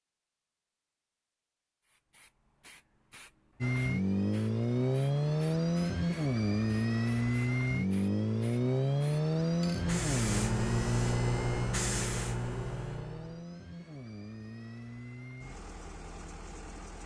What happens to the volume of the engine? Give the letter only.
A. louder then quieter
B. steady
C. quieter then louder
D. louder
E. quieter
E.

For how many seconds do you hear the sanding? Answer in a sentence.
You can't hear the sanding here.